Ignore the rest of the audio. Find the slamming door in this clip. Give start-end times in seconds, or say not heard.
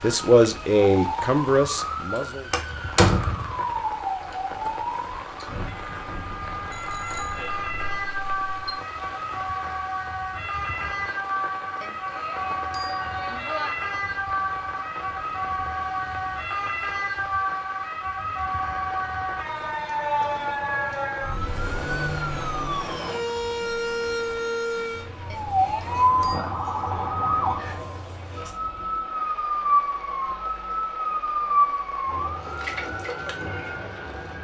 2.5-3.6.